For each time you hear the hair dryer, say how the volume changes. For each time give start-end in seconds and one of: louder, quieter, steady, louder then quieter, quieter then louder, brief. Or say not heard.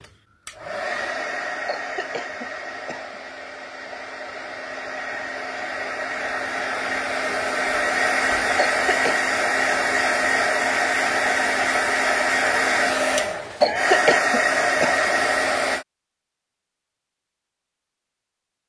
0.0-15.8 louder.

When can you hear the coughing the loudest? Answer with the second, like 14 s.
14 s.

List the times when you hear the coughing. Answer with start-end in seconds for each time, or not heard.
1.6-3.1, 8.6-9.2, 13.6-15.1.